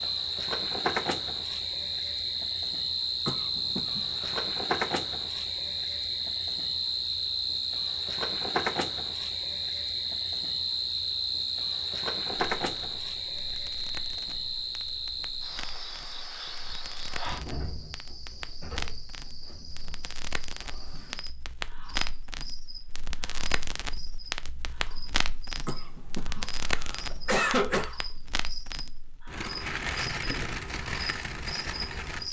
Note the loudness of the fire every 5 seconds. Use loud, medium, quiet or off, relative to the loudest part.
off, off, quiet, medium, loud, loud, loud.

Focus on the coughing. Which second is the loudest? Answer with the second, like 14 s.
27 s.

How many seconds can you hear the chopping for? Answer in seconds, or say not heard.
not heard.